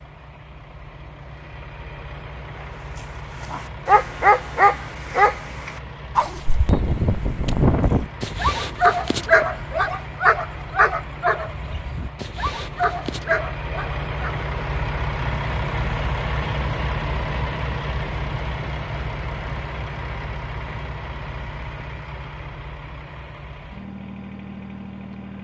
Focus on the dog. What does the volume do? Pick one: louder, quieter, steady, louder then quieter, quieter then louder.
quieter.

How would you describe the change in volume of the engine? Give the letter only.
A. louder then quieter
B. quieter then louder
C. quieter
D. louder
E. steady
A.